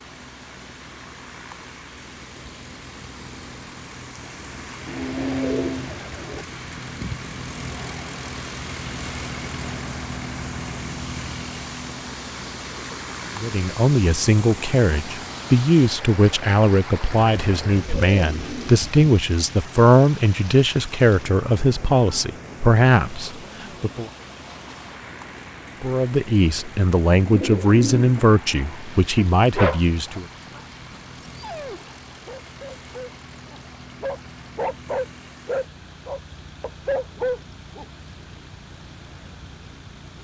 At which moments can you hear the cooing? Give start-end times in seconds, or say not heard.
4.8-6.5, 17.2-19.1, 27.2-28.2.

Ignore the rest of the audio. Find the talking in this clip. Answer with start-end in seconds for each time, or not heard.
13.3-24.1, 25.8-30.2.